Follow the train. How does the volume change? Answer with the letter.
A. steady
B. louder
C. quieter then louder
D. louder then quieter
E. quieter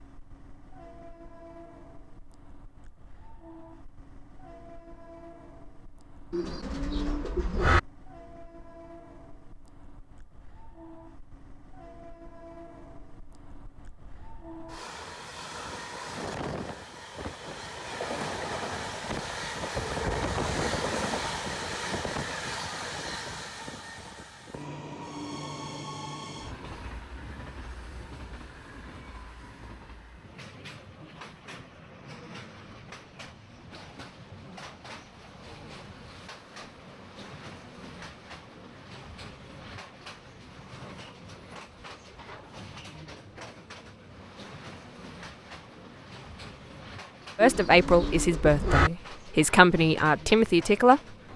D.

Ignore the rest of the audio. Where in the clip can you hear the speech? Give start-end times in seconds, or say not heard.
47.4-51.3.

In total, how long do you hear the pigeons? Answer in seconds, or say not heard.
3 s.